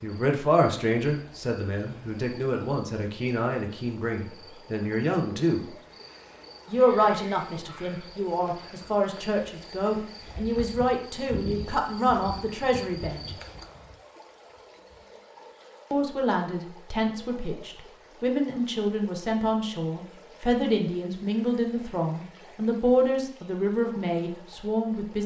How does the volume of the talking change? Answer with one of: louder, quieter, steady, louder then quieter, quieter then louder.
steady.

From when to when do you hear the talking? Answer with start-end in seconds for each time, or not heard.
0.0-5.7, 6.7-13.3, 15.9-25.2.